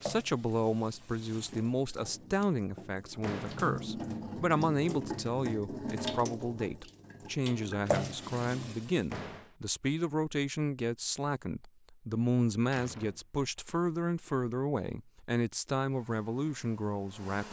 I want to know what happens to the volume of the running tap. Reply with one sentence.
The loudness of the running tap goes up.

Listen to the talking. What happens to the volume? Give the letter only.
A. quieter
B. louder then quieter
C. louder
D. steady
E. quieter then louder
D.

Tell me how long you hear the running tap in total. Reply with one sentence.
You can hear the running tap for 9 seconds altogether.